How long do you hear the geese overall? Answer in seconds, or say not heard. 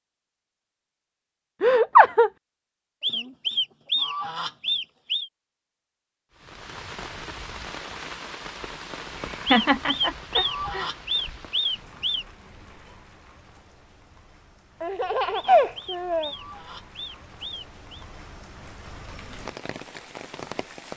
8 s.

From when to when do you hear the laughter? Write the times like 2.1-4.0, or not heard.
1.6-2.3, 9.5-10.8, 14.8-16.3.